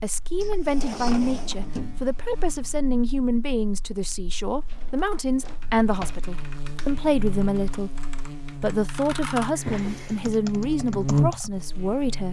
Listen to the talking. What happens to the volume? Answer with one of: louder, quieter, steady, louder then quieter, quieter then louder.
steady.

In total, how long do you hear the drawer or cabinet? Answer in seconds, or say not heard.
4 s.